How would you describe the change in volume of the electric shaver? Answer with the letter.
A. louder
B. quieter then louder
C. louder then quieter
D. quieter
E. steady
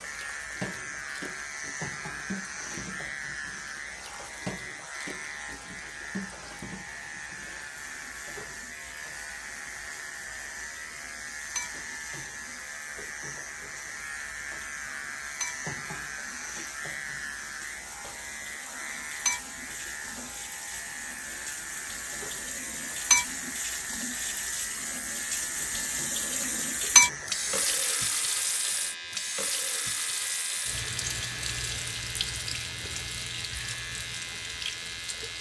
E.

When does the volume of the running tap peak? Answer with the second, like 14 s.
27 s.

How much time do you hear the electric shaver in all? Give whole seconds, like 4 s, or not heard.
35 s.